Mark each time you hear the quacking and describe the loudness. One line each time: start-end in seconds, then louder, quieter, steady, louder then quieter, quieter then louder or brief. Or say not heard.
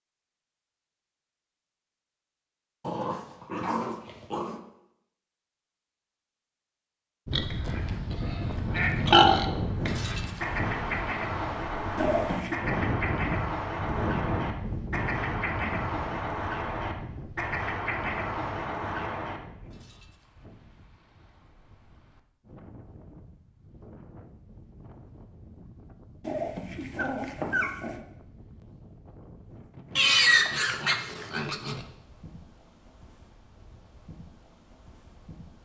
7.4-19.7 steady.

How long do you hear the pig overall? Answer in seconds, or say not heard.
4 s.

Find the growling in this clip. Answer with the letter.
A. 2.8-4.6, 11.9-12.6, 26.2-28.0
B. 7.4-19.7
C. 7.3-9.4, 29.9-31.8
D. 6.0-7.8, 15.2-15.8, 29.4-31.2
A.